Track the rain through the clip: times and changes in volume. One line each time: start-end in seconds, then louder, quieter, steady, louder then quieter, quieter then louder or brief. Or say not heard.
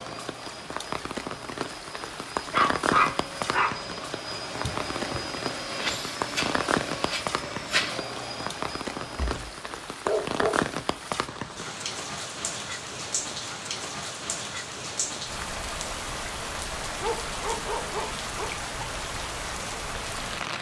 0.0-20.5 steady.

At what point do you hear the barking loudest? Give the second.
3 s.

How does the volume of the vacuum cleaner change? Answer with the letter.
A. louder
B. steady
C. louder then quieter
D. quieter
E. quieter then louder
A.